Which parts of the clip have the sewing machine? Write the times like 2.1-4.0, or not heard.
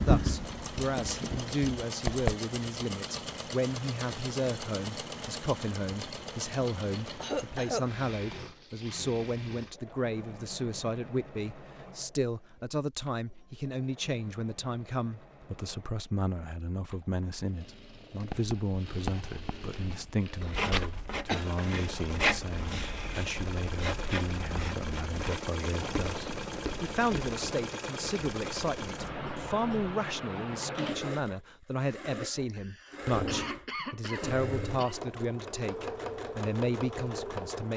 0.0-37.7.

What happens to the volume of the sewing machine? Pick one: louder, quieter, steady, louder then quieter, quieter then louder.
quieter then louder.